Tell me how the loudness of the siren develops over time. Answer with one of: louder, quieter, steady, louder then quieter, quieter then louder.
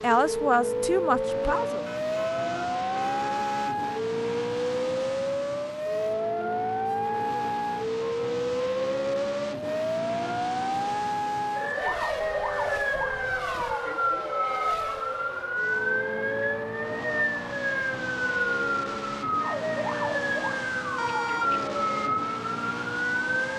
steady.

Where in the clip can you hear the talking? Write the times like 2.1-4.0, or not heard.
0.0-1.9.